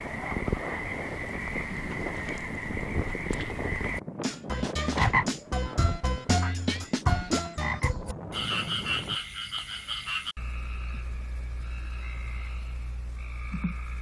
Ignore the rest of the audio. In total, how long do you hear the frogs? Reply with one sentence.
The frogs can be heard for 14 seconds in total.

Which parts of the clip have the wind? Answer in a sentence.
You can hear the wind from 0.0 to 9.2 s.